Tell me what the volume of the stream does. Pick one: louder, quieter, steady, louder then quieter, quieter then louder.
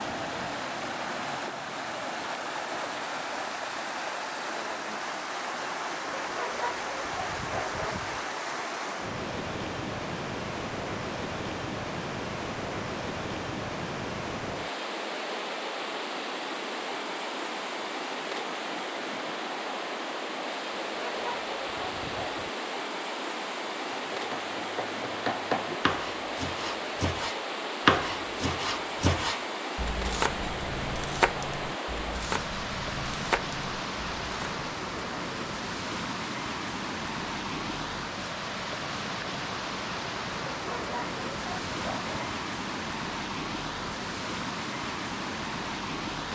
steady.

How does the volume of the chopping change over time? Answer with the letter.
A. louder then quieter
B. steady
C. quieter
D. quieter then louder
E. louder
A.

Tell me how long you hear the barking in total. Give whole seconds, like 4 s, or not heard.
6 s.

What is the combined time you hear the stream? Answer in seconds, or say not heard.
46 s.